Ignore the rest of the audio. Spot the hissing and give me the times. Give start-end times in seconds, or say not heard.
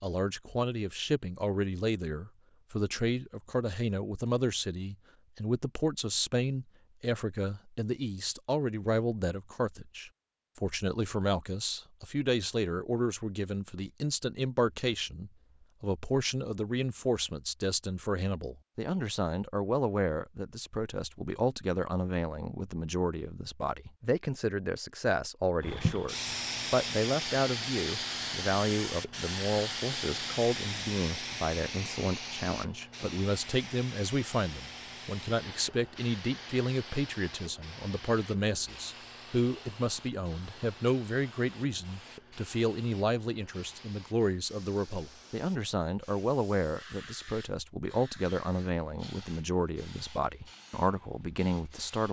25.6-52.0.